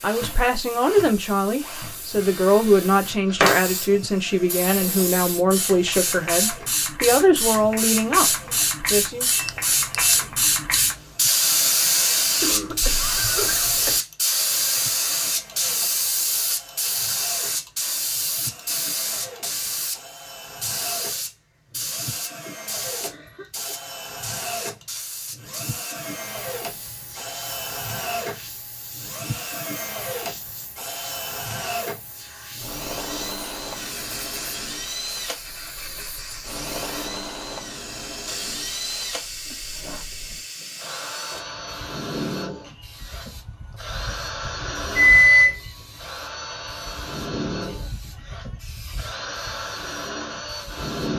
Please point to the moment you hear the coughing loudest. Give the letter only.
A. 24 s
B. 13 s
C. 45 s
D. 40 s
B.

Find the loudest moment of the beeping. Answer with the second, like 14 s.
45 s.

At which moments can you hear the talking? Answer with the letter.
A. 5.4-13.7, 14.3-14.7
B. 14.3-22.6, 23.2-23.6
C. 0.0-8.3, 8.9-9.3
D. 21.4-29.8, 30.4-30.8
C.